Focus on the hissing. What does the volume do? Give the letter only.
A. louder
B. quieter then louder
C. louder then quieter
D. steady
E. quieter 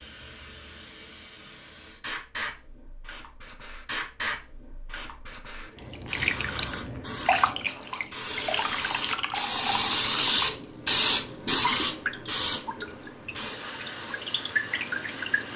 C.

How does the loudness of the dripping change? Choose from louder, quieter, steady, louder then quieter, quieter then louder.
quieter then louder.